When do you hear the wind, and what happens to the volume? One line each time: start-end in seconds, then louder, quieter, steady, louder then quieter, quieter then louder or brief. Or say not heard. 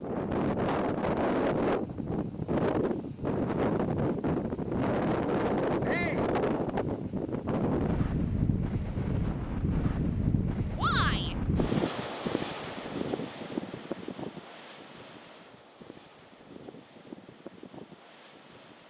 0.0-18.8 quieter.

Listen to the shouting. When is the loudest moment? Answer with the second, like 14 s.
11 s.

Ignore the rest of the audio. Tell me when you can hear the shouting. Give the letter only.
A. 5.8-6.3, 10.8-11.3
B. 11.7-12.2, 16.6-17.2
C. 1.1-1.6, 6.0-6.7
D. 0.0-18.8
A.